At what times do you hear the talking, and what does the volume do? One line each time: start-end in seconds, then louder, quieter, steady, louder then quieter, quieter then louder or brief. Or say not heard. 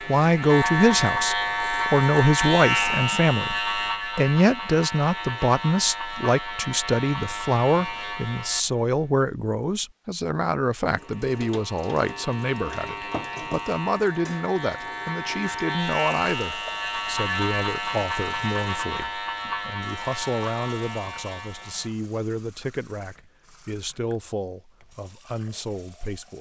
0.1-26.3 quieter.